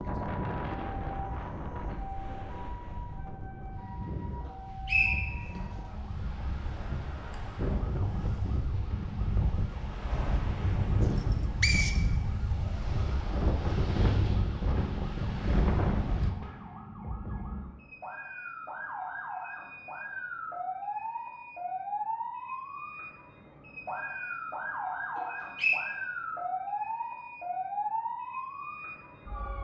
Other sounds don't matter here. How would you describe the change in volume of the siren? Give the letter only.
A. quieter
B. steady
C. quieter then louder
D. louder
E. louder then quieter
D.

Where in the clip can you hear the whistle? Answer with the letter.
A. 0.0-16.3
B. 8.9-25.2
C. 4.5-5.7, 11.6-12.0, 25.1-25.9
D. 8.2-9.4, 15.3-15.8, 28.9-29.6
C.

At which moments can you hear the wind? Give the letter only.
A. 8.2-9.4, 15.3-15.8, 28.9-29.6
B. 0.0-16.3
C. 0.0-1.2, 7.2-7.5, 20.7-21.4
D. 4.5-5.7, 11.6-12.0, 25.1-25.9
B.